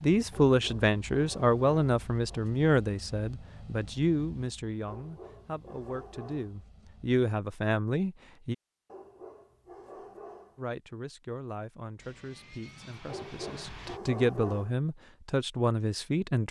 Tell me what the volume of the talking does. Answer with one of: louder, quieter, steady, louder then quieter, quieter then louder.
quieter then louder.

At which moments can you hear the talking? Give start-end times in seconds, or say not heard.
0.0-8.6, 10.6-16.4.